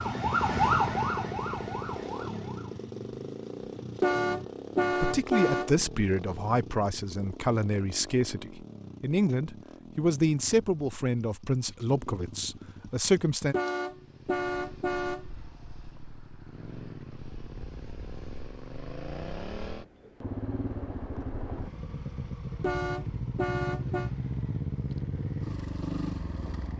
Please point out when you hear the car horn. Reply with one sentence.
The car horn can be heard from 4.0 to 5.8 s, from 13.5 to 15.2 s and from 22.6 to 24.1 s.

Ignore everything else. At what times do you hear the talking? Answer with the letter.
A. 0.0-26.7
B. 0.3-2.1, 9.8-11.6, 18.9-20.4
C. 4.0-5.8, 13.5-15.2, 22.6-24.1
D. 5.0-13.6
D.